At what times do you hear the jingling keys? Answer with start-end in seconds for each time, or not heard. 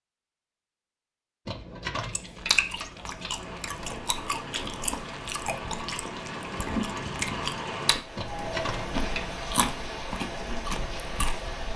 1.4-4.0, 8.2-9.4.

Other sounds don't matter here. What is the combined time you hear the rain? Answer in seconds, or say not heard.
8 s.